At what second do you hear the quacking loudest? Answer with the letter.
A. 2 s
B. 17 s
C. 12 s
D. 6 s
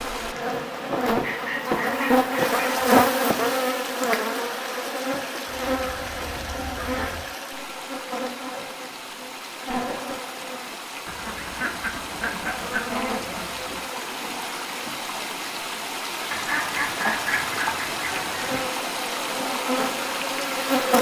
B.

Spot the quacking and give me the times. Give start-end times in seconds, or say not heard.
1.2-3.0, 5.5-7.3, 11.1-13.8, 16.3-18.6.